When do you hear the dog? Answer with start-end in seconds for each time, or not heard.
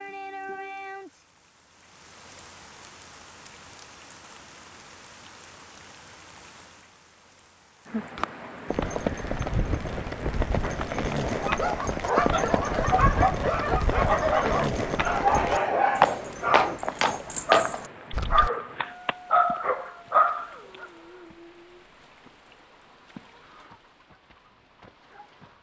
11.2-20.9.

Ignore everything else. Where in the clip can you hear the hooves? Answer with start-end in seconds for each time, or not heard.
8.2-18.5.